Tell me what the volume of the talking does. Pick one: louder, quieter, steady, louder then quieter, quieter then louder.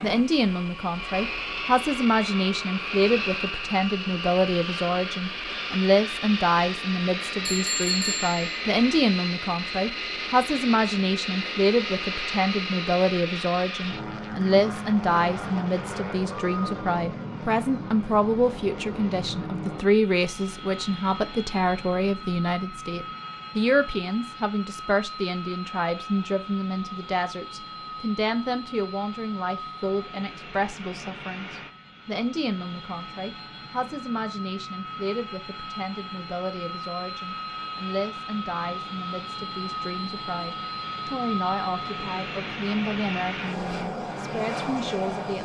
quieter.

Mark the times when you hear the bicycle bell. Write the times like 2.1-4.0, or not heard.
7.5-8.4.